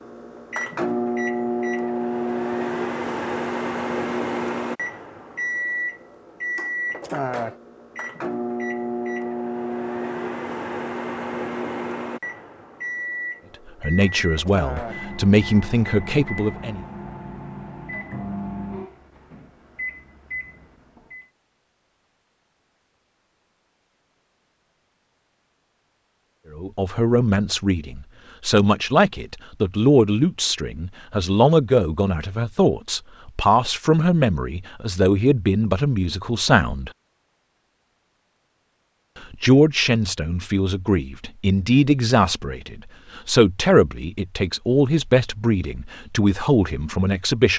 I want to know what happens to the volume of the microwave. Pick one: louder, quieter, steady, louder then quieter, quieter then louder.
quieter.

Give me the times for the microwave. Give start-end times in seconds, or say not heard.
0.0-21.3.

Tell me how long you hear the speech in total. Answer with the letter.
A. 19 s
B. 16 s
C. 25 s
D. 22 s
D.